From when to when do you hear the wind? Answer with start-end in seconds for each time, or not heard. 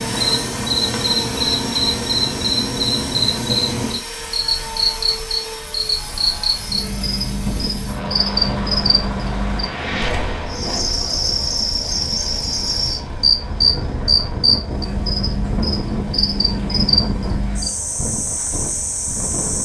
6.0-19.5.